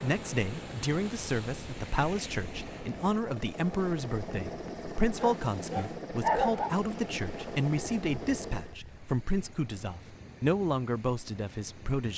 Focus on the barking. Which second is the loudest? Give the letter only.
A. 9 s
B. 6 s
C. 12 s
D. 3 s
B.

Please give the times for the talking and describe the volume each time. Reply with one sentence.
You can hear the talking from 0.0 to 12.1 s, at a steady volume.